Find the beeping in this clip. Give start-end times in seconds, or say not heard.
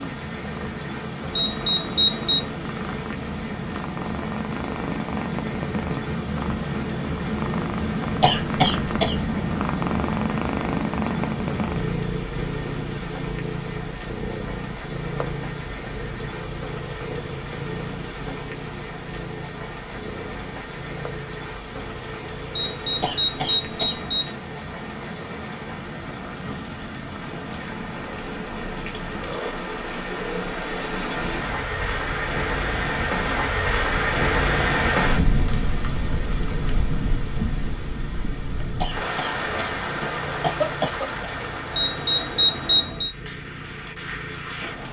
1.3-2.5, 22.5-24.4, 41.8-43.1.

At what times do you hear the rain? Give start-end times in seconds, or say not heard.
0.0-44.8.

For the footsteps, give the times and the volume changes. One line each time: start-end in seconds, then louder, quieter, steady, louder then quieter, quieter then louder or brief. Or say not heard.
not heard.